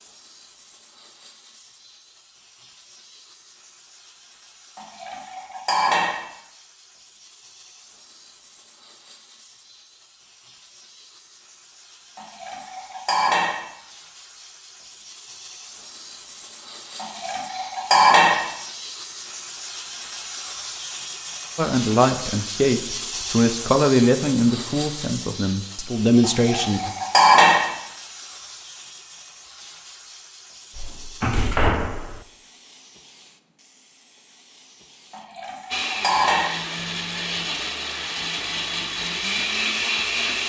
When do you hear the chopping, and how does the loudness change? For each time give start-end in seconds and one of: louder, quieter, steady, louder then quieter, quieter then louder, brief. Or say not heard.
not heard.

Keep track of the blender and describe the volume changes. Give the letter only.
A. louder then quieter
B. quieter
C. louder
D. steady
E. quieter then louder
C.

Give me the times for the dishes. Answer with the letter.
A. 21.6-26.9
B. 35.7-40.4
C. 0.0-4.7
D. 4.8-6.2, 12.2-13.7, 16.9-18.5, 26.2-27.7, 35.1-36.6
D.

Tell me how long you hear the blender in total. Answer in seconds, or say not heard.
5 s.